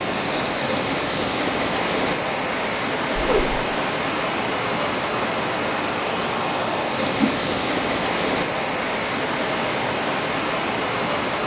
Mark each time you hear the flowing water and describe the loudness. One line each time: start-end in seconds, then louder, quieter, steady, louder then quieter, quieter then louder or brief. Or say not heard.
0.0-11.4 steady.